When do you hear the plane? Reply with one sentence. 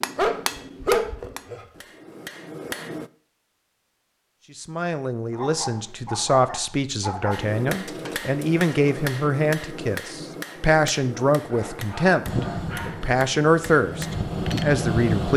The plane can be heard from 12.2 to 15.3 s.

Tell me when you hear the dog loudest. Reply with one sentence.
The loudest moment of the dog is at 1 second.